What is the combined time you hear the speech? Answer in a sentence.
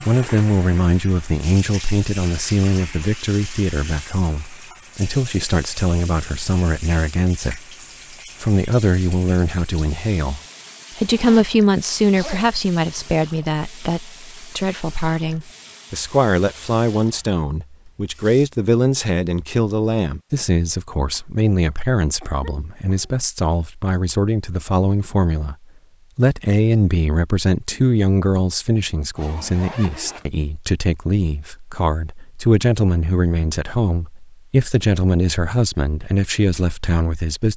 The speech can be heard for 36 seconds in total.